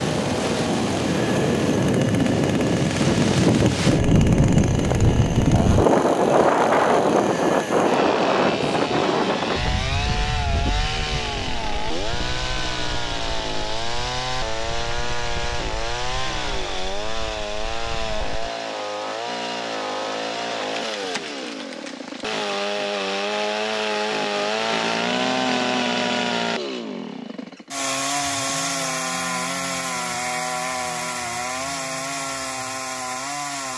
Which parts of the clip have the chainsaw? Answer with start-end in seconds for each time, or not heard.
0.0-33.7.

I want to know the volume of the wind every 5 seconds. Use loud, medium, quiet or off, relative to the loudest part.
loud, loud, quiet, quiet, off, off, off.